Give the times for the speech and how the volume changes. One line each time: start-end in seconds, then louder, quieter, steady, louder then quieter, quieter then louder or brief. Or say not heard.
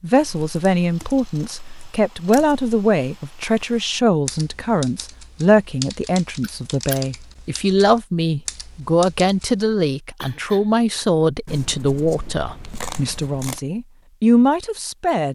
0.0-15.3 steady.